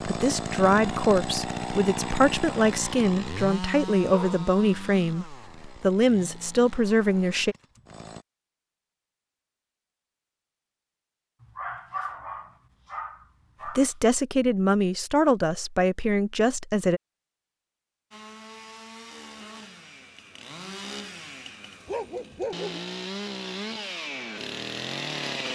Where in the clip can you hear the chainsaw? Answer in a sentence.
You can hear the chainsaw from 0.0 to 8.2 s and from 18.1 to 25.5 s.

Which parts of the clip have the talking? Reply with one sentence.
You can hear the talking from 0.1 to 7.5 s and from 13.7 to 17.0 s.